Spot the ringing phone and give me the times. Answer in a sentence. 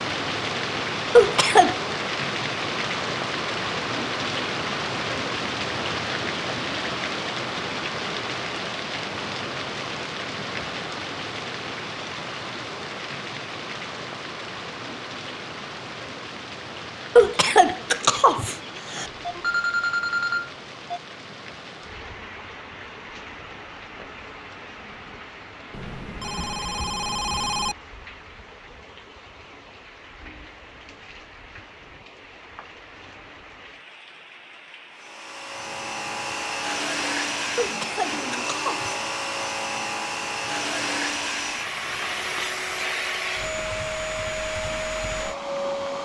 The ringing phone can be heard from 19.1 to 21.0 s and from 25.7 to 27.8 s.